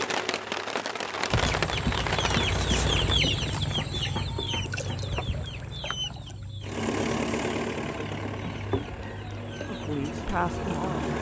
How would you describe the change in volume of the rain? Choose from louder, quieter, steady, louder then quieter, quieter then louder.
quieter.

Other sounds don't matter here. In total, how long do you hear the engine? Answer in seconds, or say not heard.
8 s.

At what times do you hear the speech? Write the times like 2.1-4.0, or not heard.
9.7-11.1.